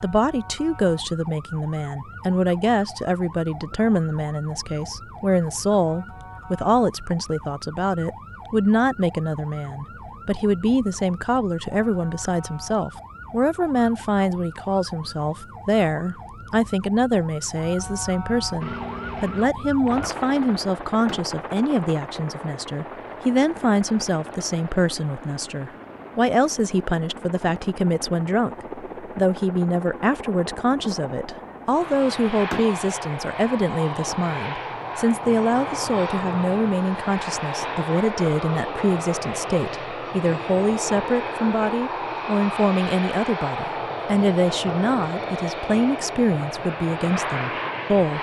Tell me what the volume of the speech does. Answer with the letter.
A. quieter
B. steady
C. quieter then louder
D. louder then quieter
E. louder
B.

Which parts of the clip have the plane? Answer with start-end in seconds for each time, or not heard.
18.6-48.1.